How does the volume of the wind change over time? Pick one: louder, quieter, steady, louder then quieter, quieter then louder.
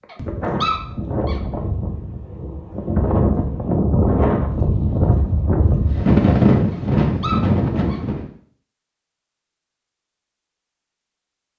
louder.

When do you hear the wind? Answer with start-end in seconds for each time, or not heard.
0.0-8.2.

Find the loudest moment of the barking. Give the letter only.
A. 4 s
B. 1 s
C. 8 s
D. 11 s
B.